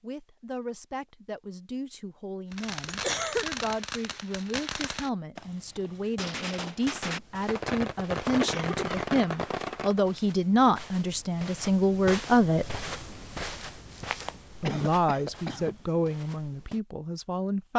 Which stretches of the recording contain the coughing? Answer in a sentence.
You can hear the coughing from 2.9 to 3.5 s, from 8.4 to 9.1 s and from 14.6 to 15.8 s.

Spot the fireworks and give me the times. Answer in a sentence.
You can hear the fireworks from 2.5 to 10.0 s.